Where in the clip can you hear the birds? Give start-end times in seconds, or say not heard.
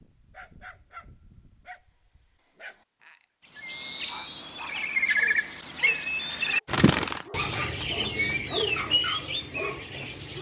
3.5-10.3.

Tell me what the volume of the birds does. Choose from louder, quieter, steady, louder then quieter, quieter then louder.
steady.